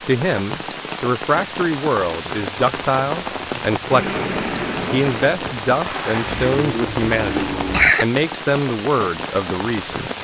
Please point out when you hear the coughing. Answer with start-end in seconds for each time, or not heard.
7.1-8.1.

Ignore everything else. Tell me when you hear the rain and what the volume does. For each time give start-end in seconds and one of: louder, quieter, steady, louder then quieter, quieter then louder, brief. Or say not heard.
0.0-10.2 steady.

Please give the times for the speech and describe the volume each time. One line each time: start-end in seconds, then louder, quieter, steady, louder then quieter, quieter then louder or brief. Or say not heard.
0.0-10.1 steady.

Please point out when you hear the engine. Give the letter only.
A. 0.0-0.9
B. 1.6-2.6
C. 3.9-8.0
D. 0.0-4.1
C.